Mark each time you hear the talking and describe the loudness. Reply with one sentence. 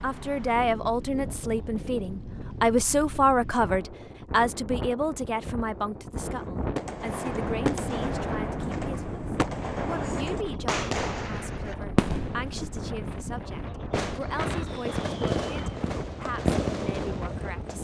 The talking can be heard from 0.0 to 17.8 s, getting quieter.